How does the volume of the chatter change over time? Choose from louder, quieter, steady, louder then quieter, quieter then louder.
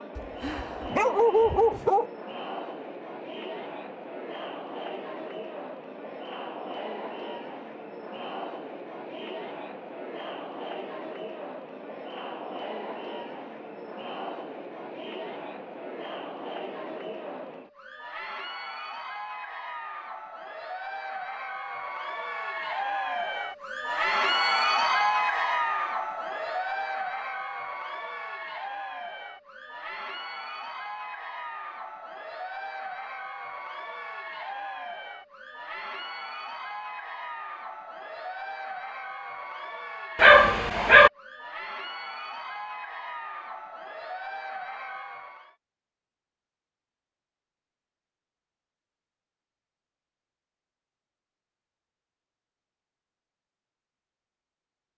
louder then quieter.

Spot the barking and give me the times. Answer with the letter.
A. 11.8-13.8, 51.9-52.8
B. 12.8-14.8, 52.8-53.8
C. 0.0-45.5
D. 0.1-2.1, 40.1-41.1
D.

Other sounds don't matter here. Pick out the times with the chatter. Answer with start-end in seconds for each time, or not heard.
0.0-45.5.